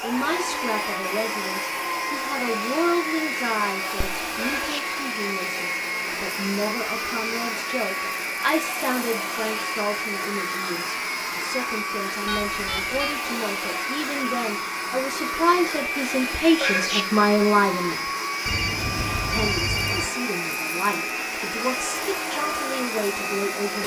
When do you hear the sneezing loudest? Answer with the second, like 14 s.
17 s.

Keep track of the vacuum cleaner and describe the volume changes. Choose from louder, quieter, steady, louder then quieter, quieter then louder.
steady.